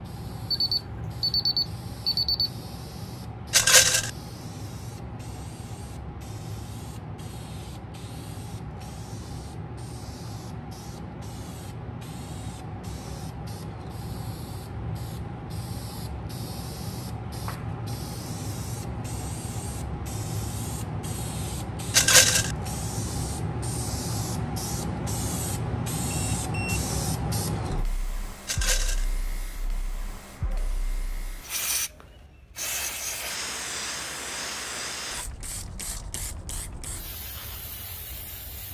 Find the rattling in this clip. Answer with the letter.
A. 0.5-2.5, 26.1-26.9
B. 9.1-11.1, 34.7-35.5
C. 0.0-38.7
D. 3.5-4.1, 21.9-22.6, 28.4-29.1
D.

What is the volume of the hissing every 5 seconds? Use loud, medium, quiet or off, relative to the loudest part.
medium, medium, medium, loud, loud, loud, loud, medium.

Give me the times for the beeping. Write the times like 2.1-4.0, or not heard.
0.5-2.5, 26.1-26.9.